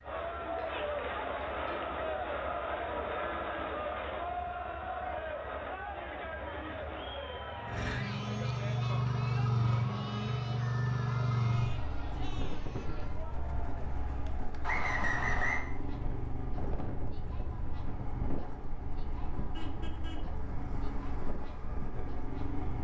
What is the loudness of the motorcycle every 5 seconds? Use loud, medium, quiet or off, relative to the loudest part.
quiet, loud, loud, medium, medium.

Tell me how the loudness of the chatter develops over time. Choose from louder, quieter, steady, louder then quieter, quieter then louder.
quieter.